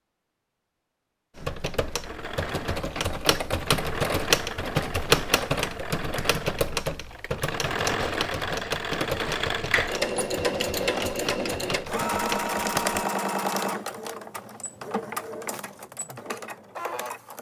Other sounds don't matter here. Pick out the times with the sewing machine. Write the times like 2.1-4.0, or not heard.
2.0-17.3.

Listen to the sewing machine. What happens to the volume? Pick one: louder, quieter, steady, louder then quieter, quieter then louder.
louder then quieter.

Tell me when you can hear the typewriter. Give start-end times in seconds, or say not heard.
1.4-13.0.